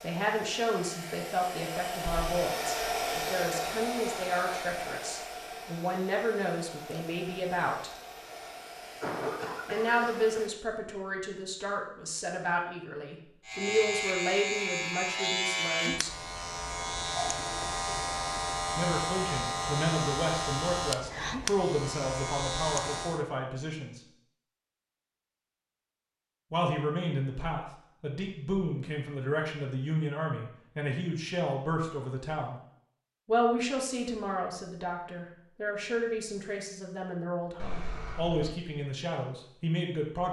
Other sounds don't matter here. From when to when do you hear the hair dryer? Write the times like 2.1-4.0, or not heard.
0.0-10.5.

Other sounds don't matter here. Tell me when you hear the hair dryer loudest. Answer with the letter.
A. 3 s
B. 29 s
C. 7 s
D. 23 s
A.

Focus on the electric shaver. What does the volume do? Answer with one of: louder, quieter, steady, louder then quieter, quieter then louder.
steady.